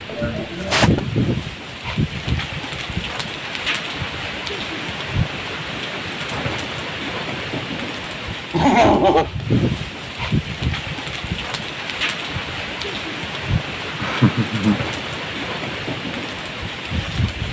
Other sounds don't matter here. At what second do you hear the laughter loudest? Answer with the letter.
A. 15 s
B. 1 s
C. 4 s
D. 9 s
D.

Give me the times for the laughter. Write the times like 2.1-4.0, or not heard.
0.1-1.0, 8.5-9.2, 13.9-14.8.